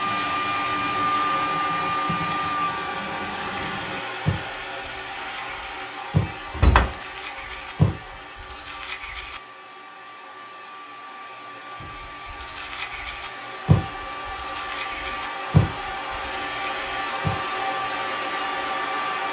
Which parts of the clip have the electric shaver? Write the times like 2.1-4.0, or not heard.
not heard.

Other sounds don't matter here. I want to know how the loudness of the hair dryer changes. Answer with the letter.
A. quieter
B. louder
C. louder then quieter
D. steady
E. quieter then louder
E.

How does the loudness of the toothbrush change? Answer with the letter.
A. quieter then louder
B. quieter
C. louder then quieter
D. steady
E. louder
E.